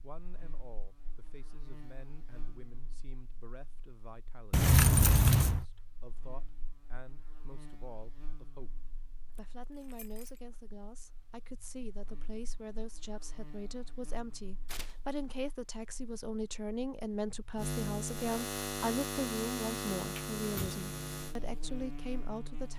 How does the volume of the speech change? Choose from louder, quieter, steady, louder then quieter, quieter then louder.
louder.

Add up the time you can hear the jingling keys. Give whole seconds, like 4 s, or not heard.
3 s.